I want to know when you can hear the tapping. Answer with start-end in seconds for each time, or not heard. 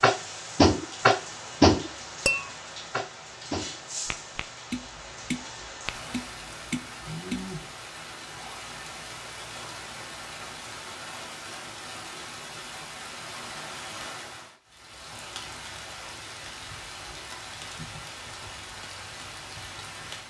0.0-7.5.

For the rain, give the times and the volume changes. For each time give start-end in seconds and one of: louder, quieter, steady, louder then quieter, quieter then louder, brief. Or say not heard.
0.0-20.2 steady.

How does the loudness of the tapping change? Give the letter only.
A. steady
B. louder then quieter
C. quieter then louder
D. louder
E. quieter
E.